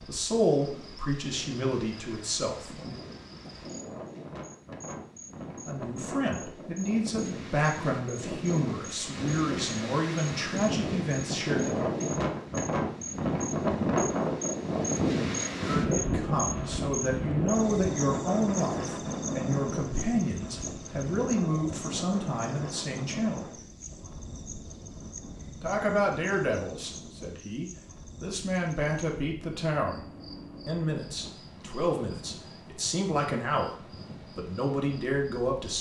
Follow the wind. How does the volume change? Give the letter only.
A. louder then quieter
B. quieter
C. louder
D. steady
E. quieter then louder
A.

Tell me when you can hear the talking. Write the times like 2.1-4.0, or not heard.
0.1-3.0, 5.7-11.9, 15.6-23.4, 25.6-30.1, 30.6-35.7.